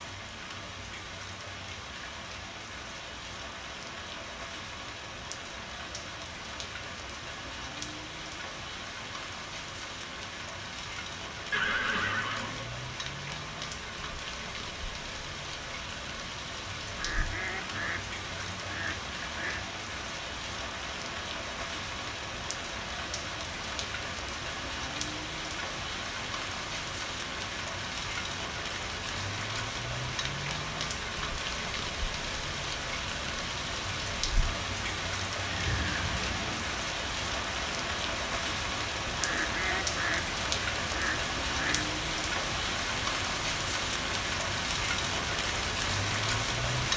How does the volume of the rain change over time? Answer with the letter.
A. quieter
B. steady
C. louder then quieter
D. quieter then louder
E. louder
E.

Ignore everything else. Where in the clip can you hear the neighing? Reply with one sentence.
The neighing can be heard from 11.5 to 12.7 s and from 35.5 to 36.6 s.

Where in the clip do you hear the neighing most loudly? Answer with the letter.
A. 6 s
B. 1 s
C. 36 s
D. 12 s
D.